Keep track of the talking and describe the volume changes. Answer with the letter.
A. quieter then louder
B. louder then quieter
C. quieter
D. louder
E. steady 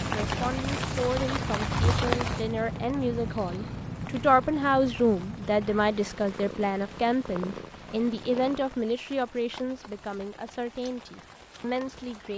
B.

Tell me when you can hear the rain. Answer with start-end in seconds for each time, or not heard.
0.0-12.3.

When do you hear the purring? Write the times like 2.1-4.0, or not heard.
0.0-8.7.